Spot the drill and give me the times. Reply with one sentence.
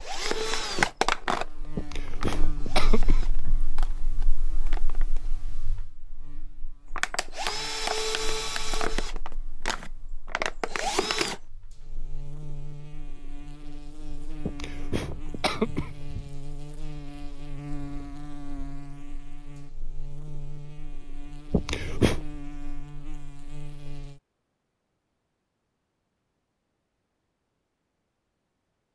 You can hear the drill from 0.0 to 5.3 s and from 7.0 to 11.4 s.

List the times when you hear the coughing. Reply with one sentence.
The coughing can be heard from 1.8 to 3.6 s, from 14.4 to 16.3 s and from 21.5 to 22.2 s.